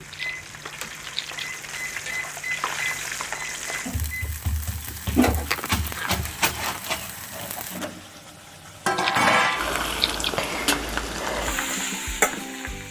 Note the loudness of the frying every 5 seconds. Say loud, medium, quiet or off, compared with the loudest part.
medium, loud, loud.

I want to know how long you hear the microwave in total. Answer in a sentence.
The microwave can be heard for 4 seconds in total.